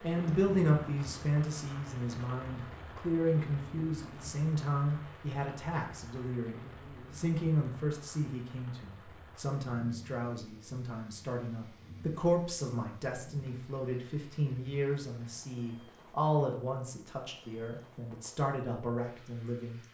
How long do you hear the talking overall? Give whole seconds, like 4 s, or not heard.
20 s.